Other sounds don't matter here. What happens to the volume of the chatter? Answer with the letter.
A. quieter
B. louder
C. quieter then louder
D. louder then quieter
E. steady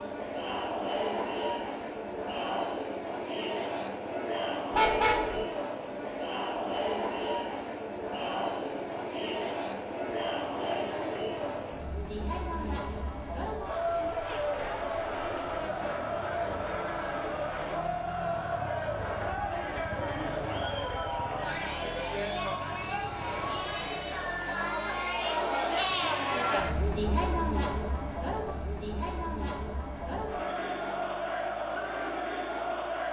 E.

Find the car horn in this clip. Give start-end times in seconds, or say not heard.
4.7-5.5.